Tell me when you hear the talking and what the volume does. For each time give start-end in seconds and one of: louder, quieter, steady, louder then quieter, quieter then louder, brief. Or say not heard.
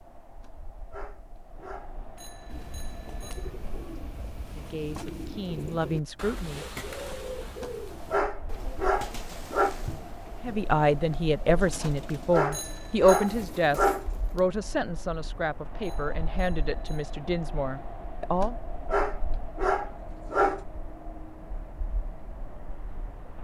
4.5-6.7 brief
10.4-18.6 quieter.